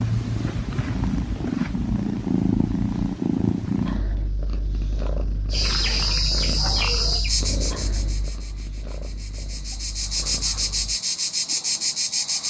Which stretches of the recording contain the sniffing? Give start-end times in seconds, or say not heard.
not heard.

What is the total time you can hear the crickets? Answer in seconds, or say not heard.
7 s.